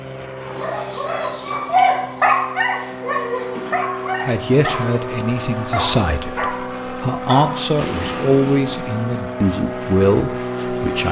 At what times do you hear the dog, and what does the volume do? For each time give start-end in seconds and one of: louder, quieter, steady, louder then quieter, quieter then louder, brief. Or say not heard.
0.4-7.7 quieter.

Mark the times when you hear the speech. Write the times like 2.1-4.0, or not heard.
4.2-11.0.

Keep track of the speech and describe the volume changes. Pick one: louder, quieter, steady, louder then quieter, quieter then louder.
louder.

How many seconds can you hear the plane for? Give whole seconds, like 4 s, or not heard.
11 s.